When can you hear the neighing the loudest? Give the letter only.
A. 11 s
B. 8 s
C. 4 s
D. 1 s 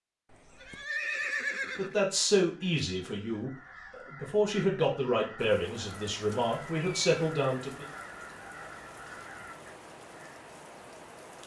D.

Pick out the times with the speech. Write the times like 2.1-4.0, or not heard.
1.8-7.8.